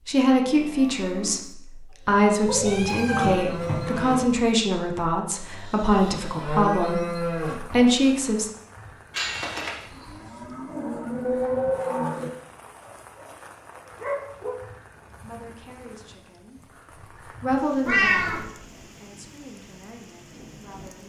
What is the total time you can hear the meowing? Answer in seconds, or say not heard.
3 s.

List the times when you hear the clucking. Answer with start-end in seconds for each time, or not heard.
not heard.